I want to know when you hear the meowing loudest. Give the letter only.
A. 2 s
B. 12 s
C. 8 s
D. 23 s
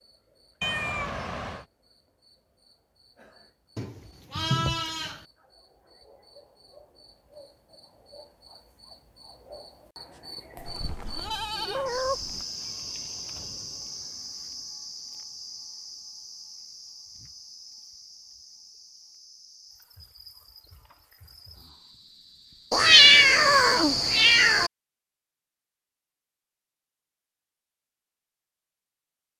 D.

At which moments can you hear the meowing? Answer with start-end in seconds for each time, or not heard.
0.6-1.6, 10.6-12.2, 22.7-24.7.